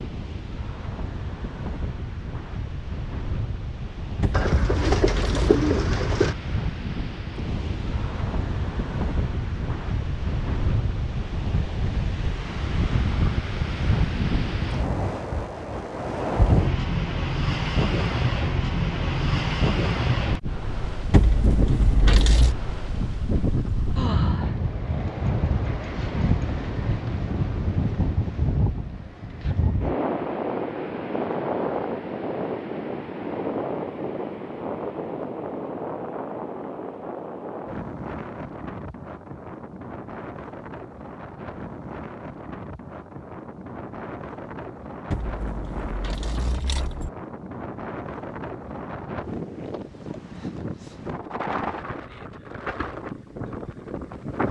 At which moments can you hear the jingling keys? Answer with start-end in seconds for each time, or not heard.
4.2-5.6, 21.1-22.6, 45.1-47.1.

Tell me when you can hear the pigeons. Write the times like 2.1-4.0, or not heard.
4.3-6.3.